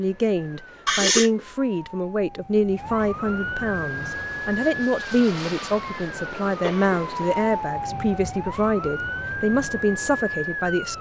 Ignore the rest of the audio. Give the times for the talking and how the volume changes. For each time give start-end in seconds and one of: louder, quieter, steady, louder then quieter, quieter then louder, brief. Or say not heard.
0.0-10.9 steady.